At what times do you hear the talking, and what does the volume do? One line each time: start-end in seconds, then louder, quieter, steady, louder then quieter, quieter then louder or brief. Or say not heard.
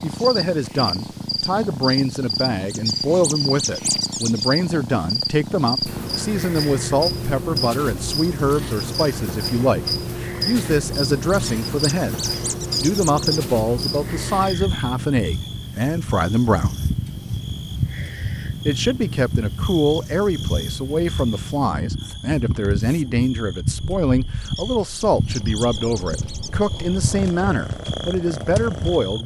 0.0-12.2 steady
12.8-16.8 steady
18.6-29.2 steady.